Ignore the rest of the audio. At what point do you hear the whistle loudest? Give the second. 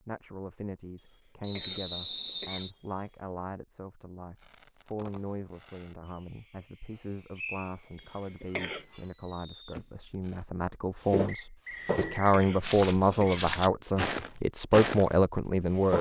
2 s.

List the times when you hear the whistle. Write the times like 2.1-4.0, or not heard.
1.4-2.7, 7.3-7.8, 11.2-12.2.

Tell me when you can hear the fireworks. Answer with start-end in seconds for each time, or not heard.
4.3-10.4.